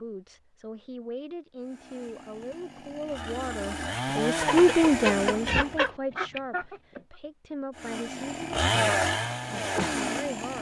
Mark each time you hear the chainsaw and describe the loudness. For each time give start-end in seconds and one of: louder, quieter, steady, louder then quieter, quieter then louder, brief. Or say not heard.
1.6-5.9 louder
7.8-10.5 brief.